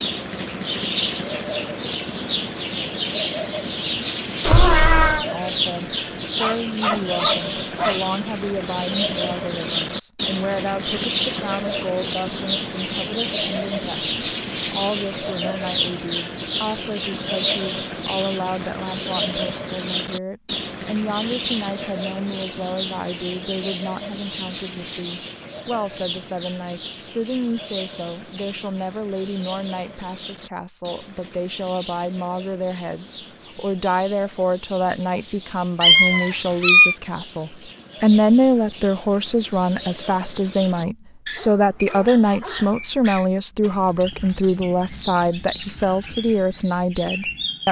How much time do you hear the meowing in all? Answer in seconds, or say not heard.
2 s.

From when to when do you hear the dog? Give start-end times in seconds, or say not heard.
6.3-8.1, 41.4-42.9.